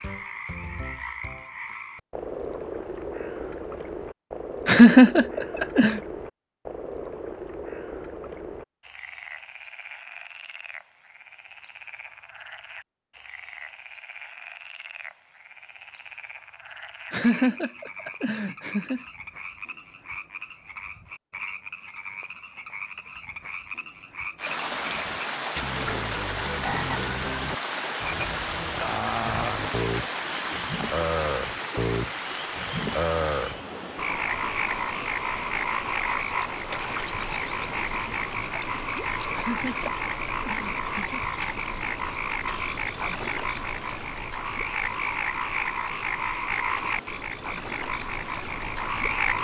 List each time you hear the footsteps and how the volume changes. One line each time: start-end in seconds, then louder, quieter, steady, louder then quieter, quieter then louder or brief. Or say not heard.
not heard.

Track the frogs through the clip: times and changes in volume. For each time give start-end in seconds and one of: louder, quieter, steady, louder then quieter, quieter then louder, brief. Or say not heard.
0.0-49.3 quieter then louder.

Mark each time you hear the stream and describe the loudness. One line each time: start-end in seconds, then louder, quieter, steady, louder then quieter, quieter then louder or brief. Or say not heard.
24.4-49.3 quieter.